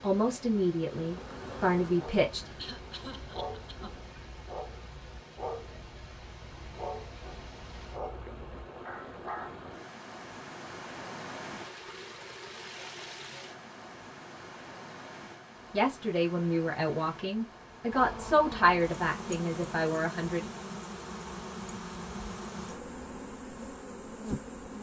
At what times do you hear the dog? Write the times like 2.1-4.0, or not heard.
1.9-9.6.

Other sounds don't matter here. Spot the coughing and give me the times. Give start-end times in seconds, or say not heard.
2.5-4.0.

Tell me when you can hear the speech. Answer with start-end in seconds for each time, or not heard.
0.0-2.5, 15.7-20.4.